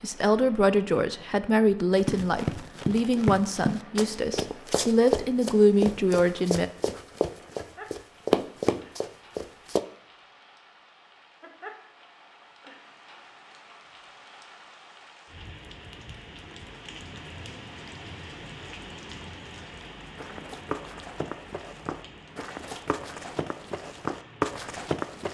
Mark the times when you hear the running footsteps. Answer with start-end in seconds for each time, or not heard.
1.9-9.8, 20.1-25.2.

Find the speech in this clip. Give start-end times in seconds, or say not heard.
0.0-6.7.